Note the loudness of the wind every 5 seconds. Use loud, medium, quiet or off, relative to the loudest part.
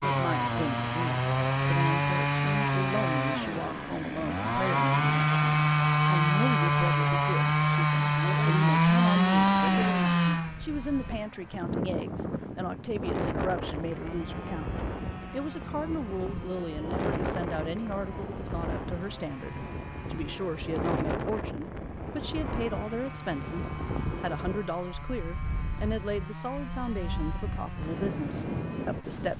off, off, loud, loud, loud, loud.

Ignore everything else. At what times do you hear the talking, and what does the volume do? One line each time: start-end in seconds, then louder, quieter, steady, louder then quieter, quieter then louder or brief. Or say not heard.
0.0-29.3 steady.